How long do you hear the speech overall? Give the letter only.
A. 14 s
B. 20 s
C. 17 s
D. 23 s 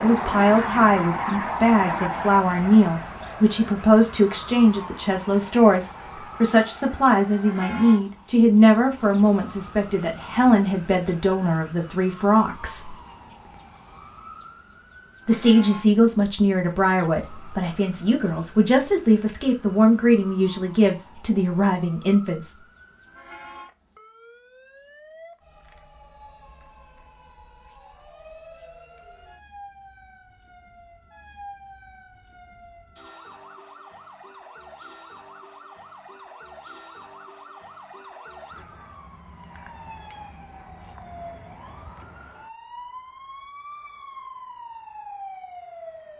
B.